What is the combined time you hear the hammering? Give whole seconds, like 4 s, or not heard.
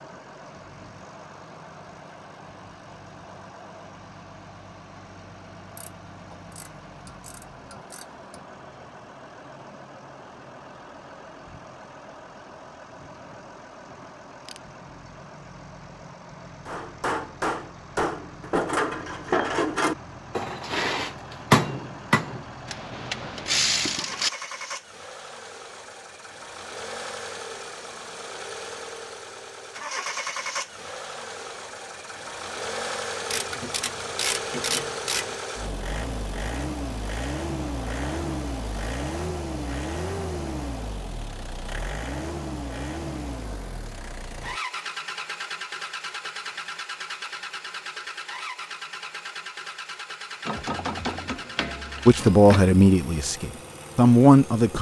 6 s.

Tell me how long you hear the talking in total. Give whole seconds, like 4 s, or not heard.
3 s.